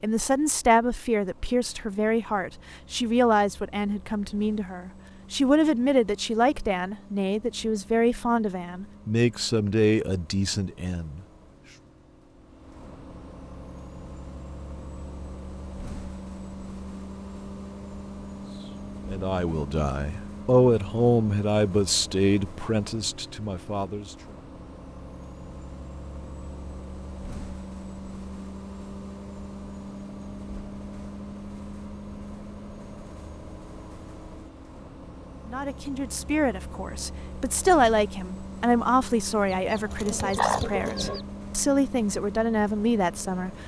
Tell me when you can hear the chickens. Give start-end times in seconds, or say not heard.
39.5-41.2.